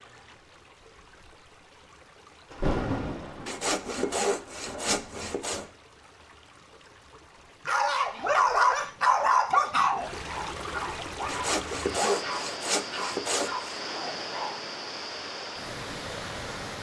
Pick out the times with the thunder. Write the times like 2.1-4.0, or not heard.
2.5-5.7.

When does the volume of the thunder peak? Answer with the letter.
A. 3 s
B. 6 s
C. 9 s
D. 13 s
A.